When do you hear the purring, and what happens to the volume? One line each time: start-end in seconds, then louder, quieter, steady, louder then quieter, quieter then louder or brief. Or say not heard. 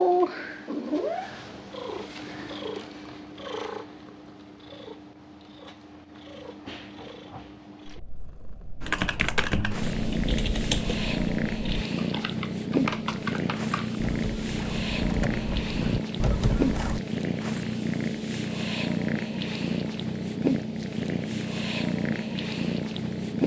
0.0-23.4 quieter then louder.